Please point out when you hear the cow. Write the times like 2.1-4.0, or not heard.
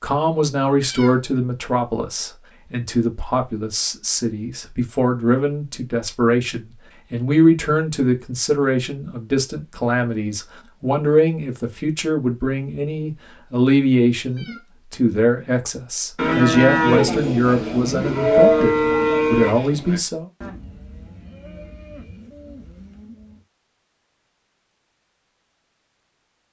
16.1-23.4.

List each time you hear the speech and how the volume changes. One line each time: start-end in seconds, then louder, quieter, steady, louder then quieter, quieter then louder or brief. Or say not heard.
0.0-20.2 steady.